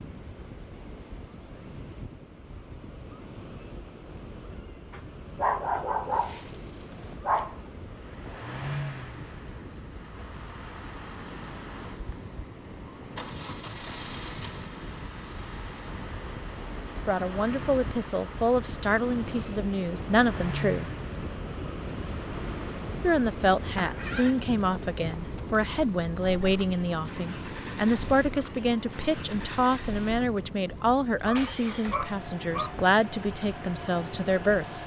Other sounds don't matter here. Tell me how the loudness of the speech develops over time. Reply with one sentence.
The loudness of the speech stays about the same.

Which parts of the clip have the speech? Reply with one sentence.
You can hear the speech from 16.9 to 20.9 s and from 23.0 to 34.8 s.